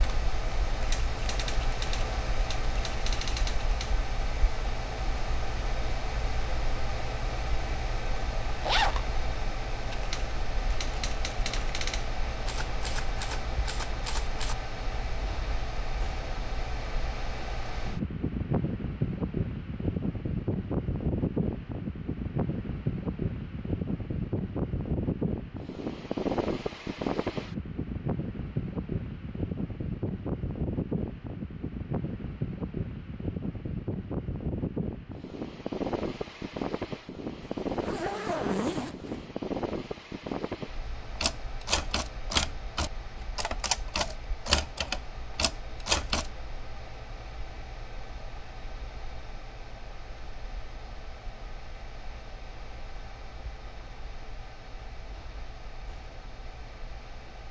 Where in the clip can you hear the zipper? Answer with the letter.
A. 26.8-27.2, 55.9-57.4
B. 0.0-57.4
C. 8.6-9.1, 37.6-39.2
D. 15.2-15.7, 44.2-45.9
C.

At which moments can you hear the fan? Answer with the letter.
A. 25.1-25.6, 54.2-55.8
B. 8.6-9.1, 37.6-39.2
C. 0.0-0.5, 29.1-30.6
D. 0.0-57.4
D.